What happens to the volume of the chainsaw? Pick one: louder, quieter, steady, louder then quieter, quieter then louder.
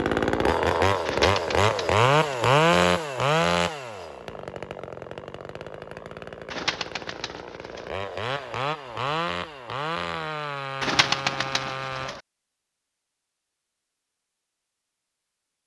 quieter then louder.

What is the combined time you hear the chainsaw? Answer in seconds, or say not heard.
12 s.